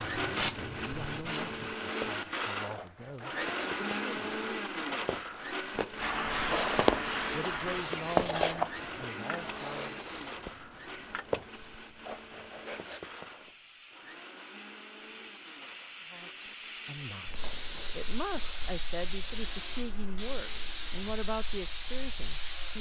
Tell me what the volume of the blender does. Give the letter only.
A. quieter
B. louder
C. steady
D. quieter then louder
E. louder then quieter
A.